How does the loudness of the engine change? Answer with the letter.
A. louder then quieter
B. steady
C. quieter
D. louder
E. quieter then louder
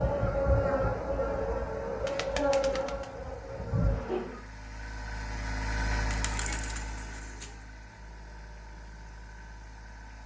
A.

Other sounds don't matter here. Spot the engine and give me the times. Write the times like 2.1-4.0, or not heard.
0.0-10.2.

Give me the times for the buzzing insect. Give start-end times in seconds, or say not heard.
0.0-4.4.